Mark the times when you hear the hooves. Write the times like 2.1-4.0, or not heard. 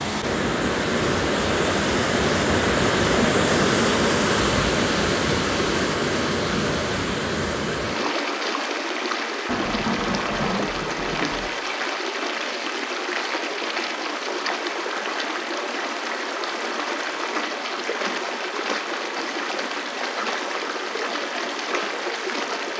not heard.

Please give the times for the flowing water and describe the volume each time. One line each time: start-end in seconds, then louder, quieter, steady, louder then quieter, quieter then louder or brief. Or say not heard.
0.0-22.7 quieter.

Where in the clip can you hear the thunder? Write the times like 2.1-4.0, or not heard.
9.4-11.5.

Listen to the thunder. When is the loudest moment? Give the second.
10 s.